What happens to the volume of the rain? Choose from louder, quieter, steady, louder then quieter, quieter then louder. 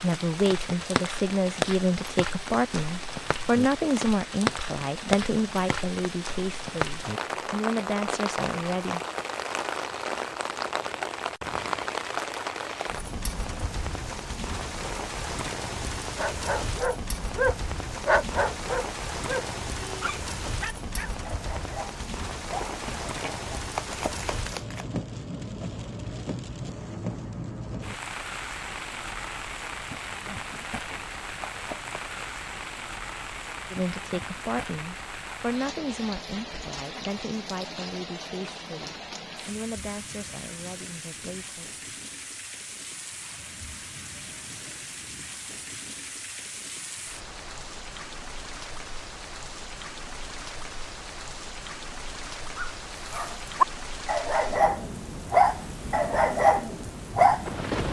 quieter.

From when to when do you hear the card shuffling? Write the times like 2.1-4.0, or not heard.
22.6-24.9, 30.3-32.3.